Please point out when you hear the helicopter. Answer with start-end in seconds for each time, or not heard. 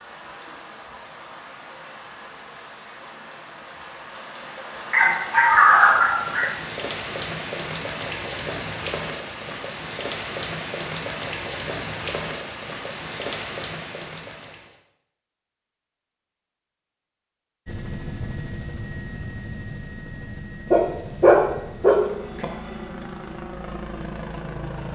17.6-24.9.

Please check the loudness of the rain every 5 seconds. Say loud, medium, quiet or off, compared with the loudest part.
medium, loud, loud, off, off.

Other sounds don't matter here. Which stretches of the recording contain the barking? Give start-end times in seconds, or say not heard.
4.9-6.5, 20.7-22.4.